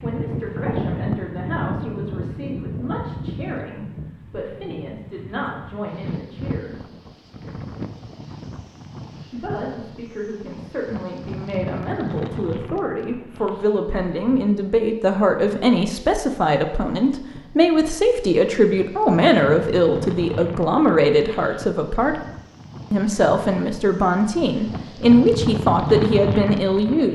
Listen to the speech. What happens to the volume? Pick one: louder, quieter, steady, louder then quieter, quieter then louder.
louder.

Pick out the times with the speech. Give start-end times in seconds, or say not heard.
0.0-6.8, 9.3-22.2, 22.9-27.1.